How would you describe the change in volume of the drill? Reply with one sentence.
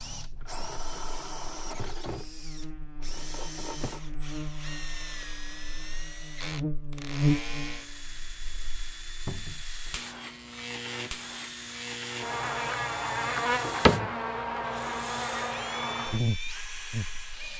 The loudness of the drill stays about the same.